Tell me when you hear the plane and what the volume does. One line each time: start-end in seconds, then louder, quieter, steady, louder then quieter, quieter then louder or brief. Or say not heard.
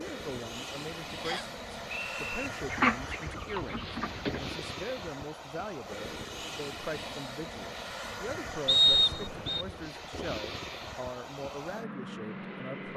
0.0-12.9 steady.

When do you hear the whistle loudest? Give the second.
9 s.